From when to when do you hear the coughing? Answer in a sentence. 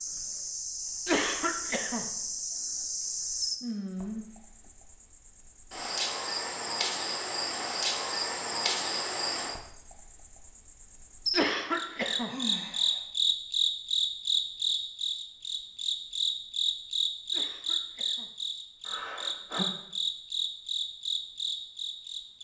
The coughing can be heard from 1.1 to 2.0 s, from 11.3 to 12.3 s and from 17.3 to 18.3 s.